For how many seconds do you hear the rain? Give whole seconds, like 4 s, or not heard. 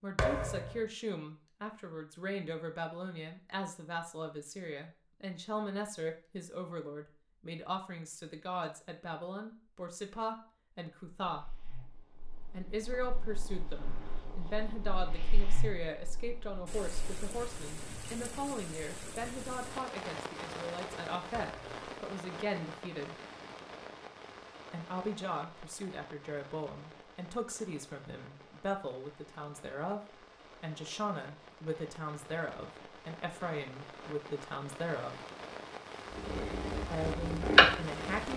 22 s.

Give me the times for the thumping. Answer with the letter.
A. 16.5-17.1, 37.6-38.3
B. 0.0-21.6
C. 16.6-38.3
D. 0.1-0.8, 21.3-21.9
D.